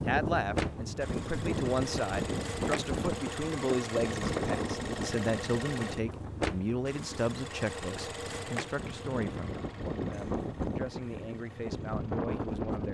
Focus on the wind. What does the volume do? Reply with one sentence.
The loudness of the wind goes down, then up.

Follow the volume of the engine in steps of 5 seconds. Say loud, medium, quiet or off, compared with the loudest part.
loud, loud, quiet.